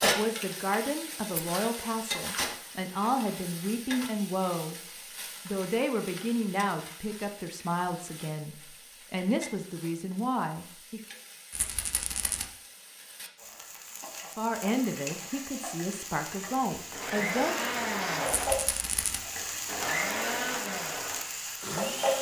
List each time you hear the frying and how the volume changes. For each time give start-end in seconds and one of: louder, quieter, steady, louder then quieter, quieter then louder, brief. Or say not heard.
0.0-22.1 quieter then louder.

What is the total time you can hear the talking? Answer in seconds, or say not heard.
14 s.